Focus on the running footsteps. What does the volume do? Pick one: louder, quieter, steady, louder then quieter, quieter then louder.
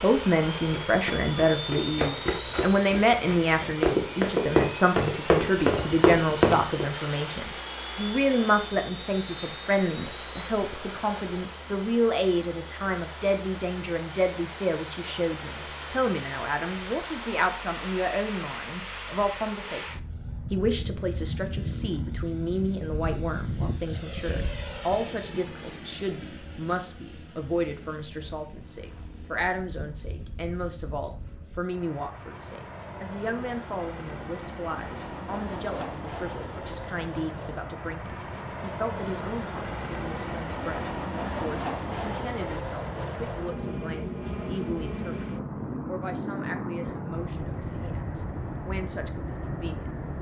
louder.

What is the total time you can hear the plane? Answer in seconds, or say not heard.
50 s.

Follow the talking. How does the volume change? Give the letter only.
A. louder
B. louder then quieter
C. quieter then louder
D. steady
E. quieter
E.